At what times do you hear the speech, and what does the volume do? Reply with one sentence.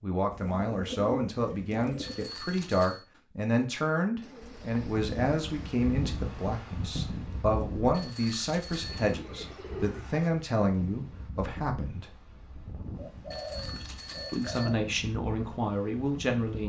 The speech can be heard from 0.0 to 12.1 s, at a steady volume; and briefly from 14.3 to 16.6 s.